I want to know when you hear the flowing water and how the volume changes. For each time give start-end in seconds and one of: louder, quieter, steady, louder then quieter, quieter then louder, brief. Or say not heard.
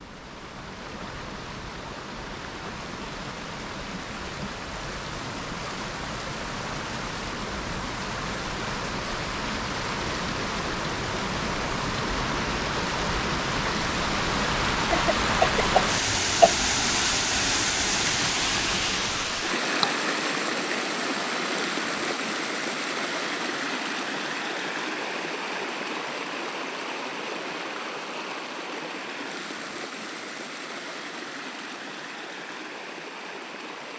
0.0-33.9 louder then quieter.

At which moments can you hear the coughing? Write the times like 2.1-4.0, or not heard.
14.9-16.6.